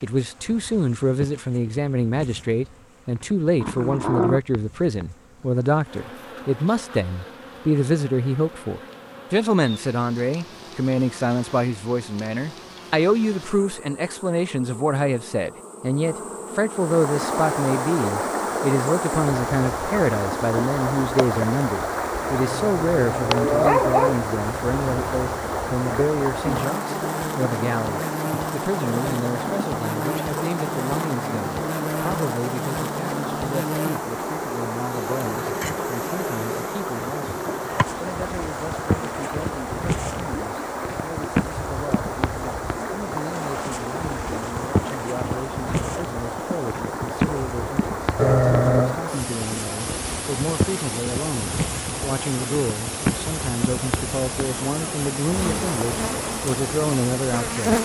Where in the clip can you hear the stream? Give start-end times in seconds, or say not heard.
16.6-57.7.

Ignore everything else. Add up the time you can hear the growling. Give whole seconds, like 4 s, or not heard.
3 s.